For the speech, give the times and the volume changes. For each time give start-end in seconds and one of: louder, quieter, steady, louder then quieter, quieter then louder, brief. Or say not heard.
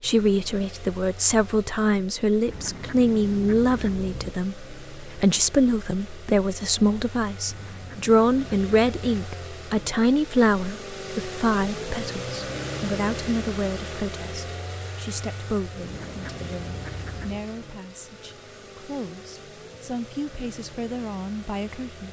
0.0-22.0 quieter.